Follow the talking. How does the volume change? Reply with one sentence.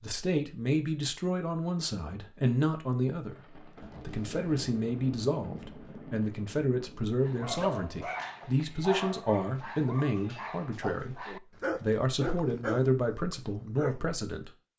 The volume of the talking stays about the same.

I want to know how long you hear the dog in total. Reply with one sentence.
The dog can be heard for 7 seconds in total.